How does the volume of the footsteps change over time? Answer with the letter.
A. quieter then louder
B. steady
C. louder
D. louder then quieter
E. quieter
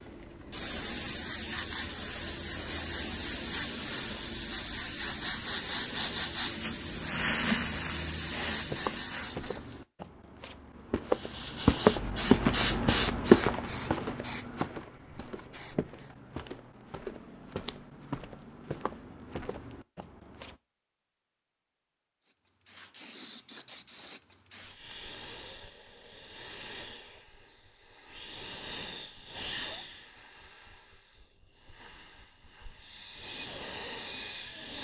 D.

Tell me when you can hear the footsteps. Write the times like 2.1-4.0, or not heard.
8.7-20.6.